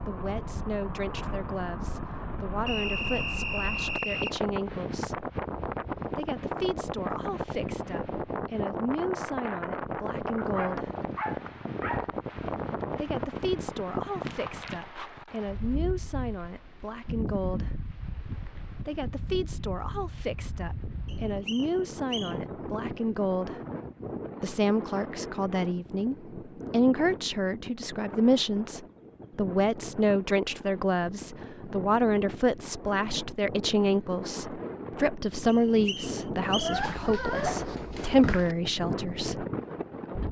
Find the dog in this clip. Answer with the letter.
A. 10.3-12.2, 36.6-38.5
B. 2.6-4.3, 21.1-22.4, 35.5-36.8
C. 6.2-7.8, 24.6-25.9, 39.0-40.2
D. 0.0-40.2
A.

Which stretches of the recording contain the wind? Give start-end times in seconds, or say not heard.
0.0-40.2.